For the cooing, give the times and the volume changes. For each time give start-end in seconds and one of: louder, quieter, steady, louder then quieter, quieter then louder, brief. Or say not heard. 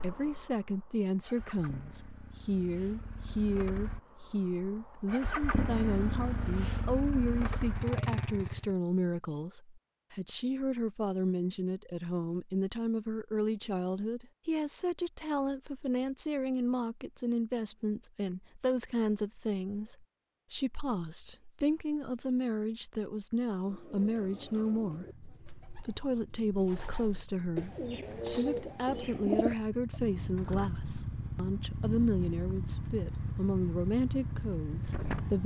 23.6-30.0 quieter then louder.